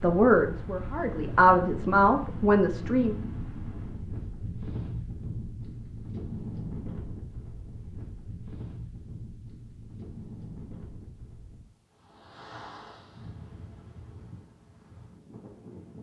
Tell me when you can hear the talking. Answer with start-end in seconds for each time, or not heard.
0.0-3.1.